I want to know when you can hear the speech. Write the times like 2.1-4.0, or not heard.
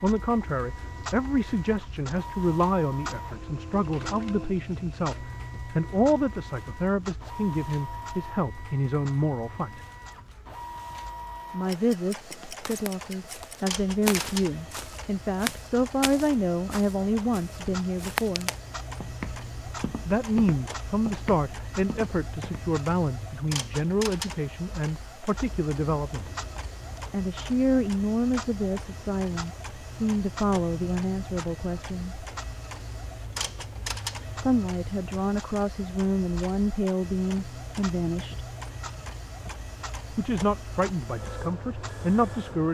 0.0-9.8, 11.5-18.5, 20.1-26.3, 27.1-32.1, 34.4-38.5, 40.1-42.6.